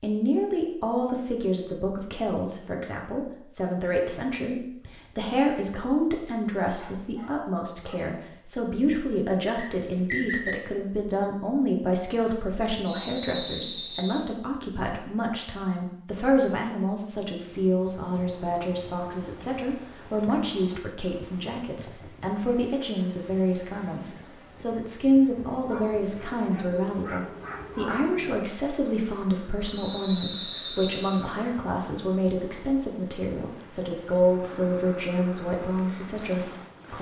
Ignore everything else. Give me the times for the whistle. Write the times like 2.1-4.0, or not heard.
9.6-10.6, 12.8-14.2, 29.7-31.2.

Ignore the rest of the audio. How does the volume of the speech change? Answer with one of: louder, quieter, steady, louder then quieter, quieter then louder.
steady.